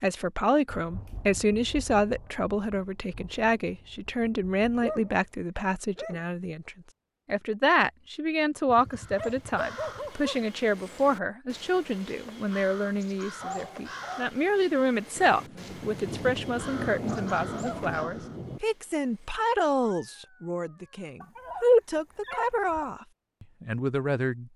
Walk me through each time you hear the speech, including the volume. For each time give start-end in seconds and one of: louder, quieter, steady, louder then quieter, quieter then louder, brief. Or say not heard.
0.0-24.5 steady.